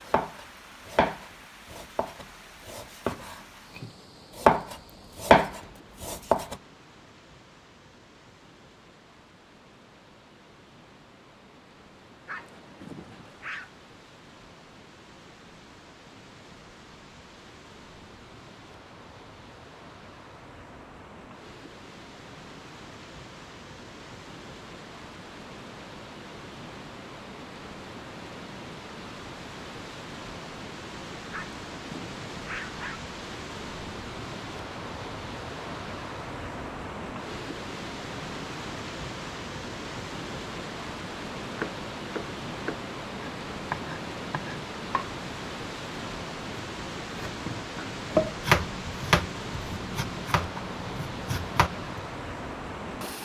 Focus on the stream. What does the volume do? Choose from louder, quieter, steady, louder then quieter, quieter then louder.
louder.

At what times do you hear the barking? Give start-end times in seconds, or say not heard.
12.2-13.7, 31.3-33.0.